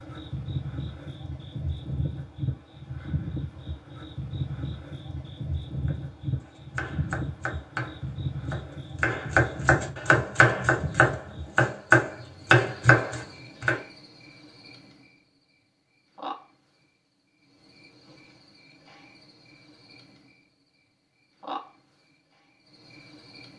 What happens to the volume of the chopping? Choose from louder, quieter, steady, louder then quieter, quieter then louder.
louder.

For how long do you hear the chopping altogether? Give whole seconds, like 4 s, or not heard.
8 s.